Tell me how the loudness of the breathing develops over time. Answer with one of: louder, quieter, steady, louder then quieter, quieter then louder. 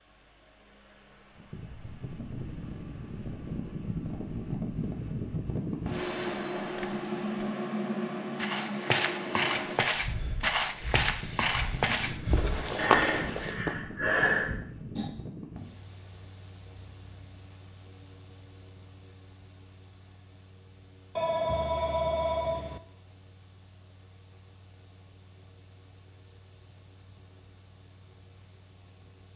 louder.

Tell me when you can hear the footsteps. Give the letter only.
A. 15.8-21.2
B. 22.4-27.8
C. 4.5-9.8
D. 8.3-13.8
D.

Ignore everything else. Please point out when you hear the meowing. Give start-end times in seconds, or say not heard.
not heard.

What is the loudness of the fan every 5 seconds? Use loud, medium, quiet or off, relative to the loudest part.
medium, loud, medium, quiet, quiet, quiet.